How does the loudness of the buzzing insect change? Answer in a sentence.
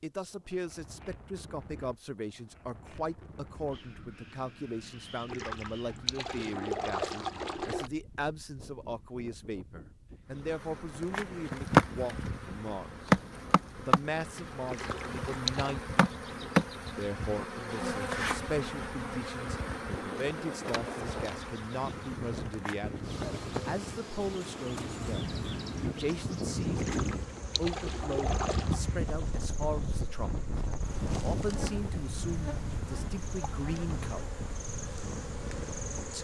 The loudness of the buzzing insect goes down.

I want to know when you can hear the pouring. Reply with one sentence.
You can hear the pouring from 5.2 to 7.9 s, from 14.7 to 15.8 s and from 26.8 to 28.8 s.